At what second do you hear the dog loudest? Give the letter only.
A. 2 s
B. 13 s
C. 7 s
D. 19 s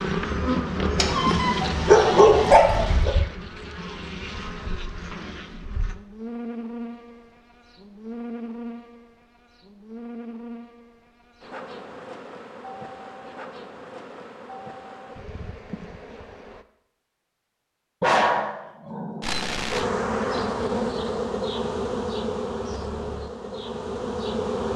A.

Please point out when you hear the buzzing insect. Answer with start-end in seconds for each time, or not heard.
0.0-16.6, 19.2-24.7.